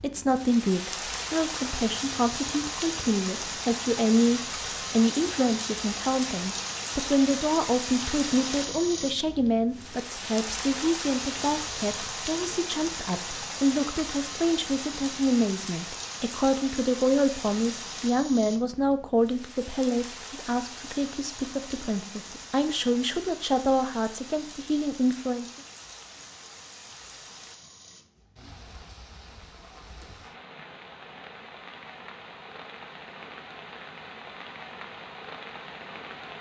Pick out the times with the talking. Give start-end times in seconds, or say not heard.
0.0-25.4.